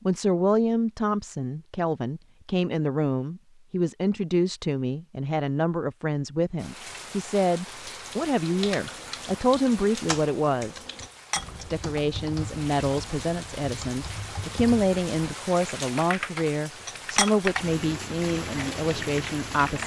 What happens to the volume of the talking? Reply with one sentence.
The loudness of the talking stays about the same.